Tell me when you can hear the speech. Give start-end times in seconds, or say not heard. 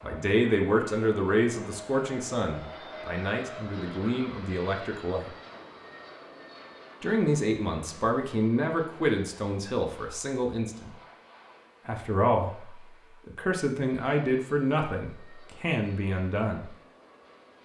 0.0-5.3, 7.0-10.9, 11.8-16.7.